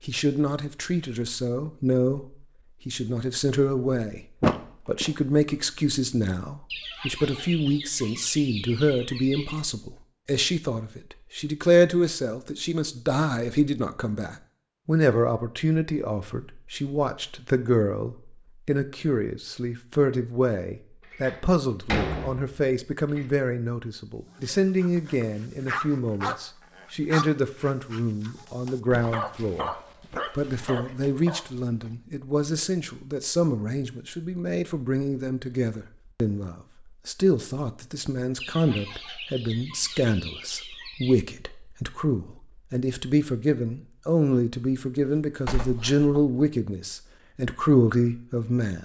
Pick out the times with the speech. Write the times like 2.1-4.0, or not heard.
0.0-4.2, 4.8-48.8.